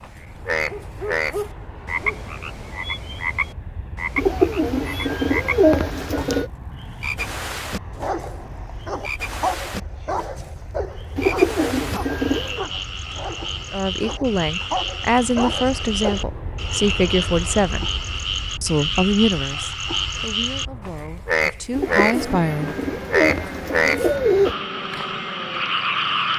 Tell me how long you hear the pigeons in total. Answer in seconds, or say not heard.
7 s.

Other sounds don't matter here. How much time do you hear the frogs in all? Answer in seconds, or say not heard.
26 s.